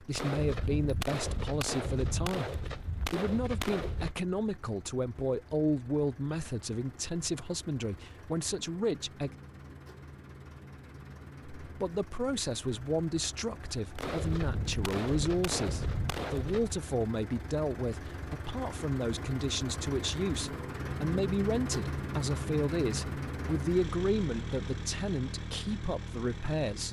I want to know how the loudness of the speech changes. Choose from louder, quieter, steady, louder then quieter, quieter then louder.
steady.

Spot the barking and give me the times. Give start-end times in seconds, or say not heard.
not heard.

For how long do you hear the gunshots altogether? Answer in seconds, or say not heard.
7 s.